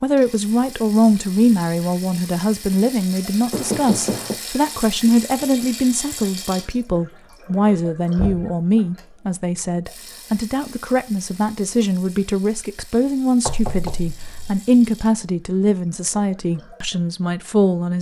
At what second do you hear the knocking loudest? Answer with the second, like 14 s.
4 s.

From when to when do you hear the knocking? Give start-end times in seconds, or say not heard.
3.5-4.4, 8.2-8.6, 13.4-14.6.